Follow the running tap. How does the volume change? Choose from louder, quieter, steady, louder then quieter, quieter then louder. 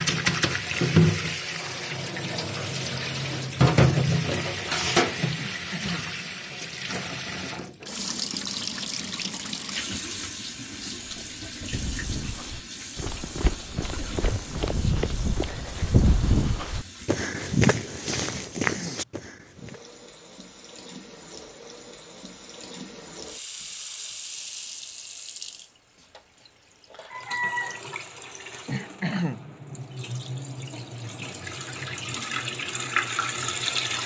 quieter then louder.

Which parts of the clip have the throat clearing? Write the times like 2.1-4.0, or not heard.
5.3-6.0, 18.3-19.1, 28.6-29.4.